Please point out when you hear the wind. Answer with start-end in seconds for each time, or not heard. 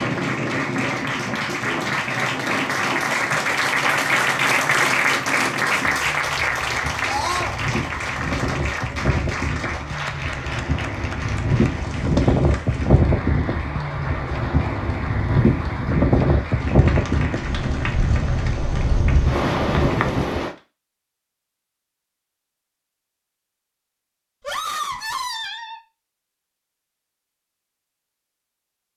0.0-20.6.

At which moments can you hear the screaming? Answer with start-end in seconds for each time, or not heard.
7.0-7.5, 24.4-25.8.